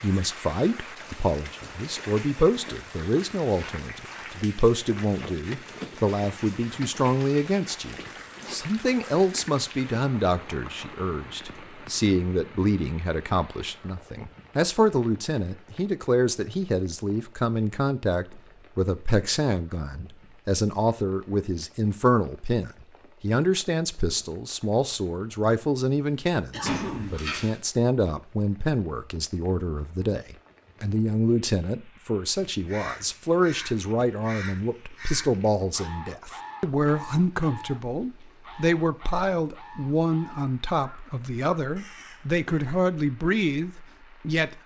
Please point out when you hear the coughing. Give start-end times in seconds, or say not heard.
26.5-27.3.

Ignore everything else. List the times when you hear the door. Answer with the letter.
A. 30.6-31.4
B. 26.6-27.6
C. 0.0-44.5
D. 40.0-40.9
B.